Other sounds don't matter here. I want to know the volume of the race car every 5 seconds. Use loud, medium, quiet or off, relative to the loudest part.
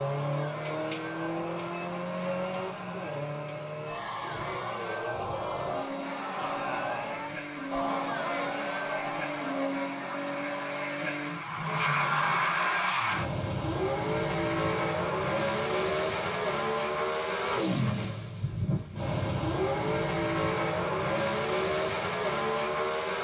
medium, medium, loud, loud, loud.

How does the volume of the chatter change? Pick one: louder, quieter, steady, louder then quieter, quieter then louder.
louder then quieter.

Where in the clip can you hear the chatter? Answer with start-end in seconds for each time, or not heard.
0.0-12.9.